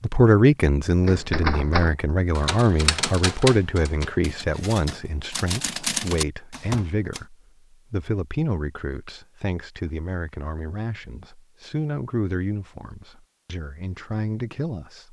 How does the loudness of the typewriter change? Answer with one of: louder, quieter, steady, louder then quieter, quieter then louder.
quieter then louder.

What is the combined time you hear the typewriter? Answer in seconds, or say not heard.
6 s.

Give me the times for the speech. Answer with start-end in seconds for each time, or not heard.
0.0-15.0.